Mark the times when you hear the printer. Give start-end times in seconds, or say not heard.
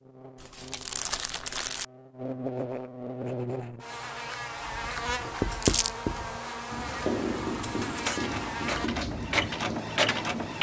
7.6-10.5.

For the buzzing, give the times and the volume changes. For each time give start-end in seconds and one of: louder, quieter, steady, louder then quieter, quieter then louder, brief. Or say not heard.
0.0-8.9 louder.